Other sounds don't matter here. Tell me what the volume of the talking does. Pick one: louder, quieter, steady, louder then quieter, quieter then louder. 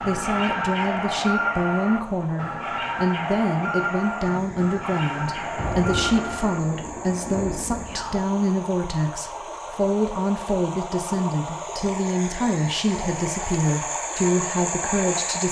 steady.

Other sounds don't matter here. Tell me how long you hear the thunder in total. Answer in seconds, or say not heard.
4 s.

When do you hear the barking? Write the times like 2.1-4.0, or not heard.
0.0-6.6.